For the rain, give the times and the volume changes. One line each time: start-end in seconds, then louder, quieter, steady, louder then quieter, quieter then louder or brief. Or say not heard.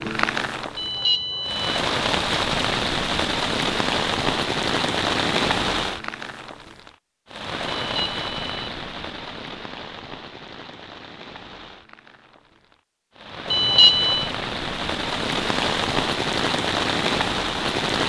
0.0-18.0 quieter then louder.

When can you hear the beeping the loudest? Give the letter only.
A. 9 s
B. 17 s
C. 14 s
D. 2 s
C.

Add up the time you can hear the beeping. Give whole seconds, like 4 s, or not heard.
3 s.